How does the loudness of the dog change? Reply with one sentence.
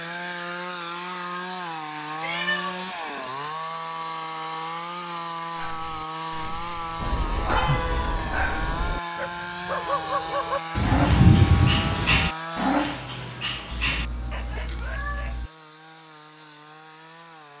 The volume of the dog goes up, then down.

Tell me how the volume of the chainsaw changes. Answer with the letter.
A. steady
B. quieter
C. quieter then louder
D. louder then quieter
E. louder
B.